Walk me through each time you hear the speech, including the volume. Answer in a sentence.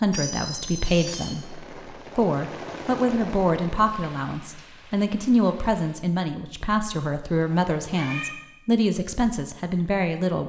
You can hear the speech from 0.0 to 10.4 s, at a steady volume.